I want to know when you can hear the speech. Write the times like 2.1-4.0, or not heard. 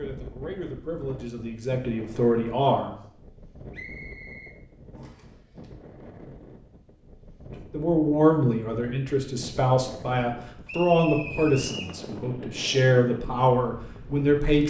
0.0-3.0, 7.5-14.6.